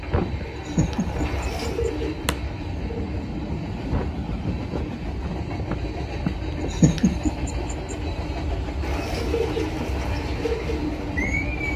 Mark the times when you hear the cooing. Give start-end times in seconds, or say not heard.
0.0-3.2, 8.8-11.7.